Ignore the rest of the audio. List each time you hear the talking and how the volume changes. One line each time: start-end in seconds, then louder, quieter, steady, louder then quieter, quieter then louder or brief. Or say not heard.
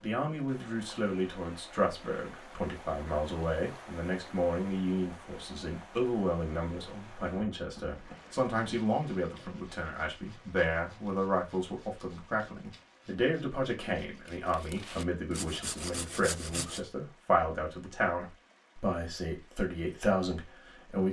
0.0-21.0 steady.